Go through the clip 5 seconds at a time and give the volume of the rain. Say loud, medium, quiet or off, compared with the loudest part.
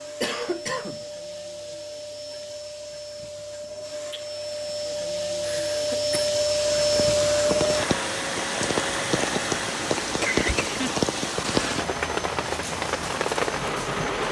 off, loud, loud.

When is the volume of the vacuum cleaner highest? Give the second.
7 s.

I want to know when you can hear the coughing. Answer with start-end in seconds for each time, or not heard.
0.2-1.1, 5.4-6.3, 10.2-10.9.